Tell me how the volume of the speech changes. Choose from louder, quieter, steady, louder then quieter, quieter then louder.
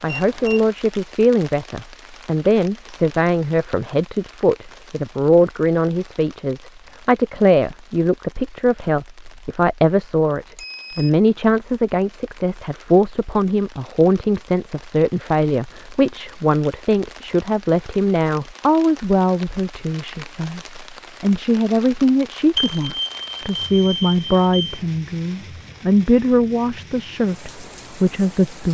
steady.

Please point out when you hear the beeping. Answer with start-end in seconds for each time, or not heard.
0.1-0.7, 10.6-11.1, 22.6-24.8.